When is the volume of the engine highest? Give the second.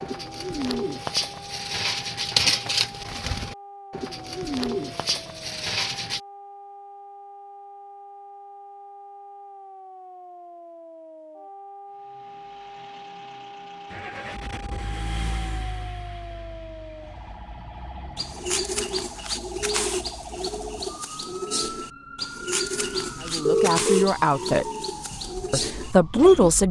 15 s.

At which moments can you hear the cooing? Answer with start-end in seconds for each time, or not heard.
0.0-6.2, 18.1-26.5.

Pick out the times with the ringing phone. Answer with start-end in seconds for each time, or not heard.
23.4-24.1.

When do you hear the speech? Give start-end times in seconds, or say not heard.
23.2-24.6, 25.5-26.6.